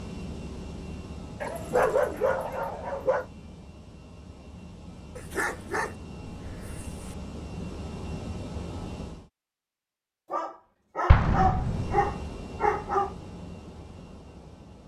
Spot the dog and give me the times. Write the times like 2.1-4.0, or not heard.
1.4-3.2, 5.2-7.2, 10.3-13.2.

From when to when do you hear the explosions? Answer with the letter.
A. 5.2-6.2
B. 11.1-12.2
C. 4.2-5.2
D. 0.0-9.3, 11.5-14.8
B.